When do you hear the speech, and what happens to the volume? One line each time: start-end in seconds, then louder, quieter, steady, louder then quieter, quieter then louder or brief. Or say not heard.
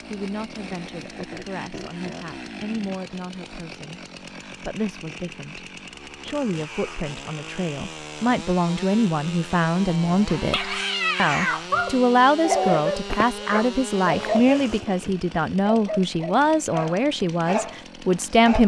0.1-18.6 louder.